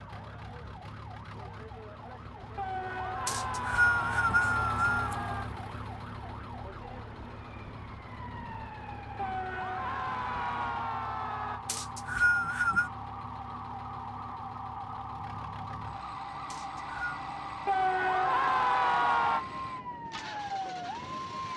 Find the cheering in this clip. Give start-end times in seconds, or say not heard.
2.5-5.5, 9.2-11.6, 17.6-19.4.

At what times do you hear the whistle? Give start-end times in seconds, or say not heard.
3.2-5.2, 11.7-12.9, 16.5-17.2.